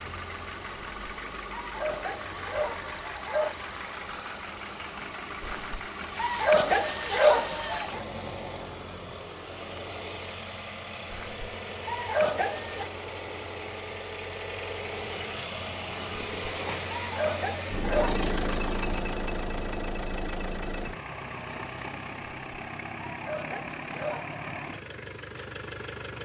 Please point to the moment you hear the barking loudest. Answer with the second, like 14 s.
7 s.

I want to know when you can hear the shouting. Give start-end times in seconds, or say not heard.
not heard.